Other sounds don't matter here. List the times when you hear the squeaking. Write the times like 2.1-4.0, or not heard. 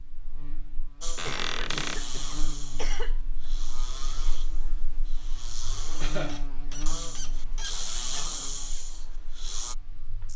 1.1-2.0, 6.2-8.3.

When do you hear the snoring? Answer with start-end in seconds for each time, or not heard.
1.0-9.8.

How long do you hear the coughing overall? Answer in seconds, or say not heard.
2 s.